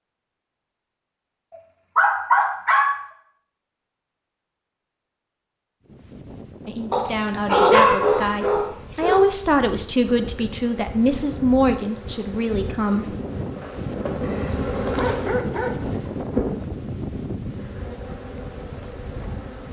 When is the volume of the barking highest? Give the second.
8 s.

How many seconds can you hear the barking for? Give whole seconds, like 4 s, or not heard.
5 s.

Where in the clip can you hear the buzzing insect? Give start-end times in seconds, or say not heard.
10.0-19.6.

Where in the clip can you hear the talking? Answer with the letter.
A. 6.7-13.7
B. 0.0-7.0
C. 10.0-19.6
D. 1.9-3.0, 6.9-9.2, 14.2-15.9
A.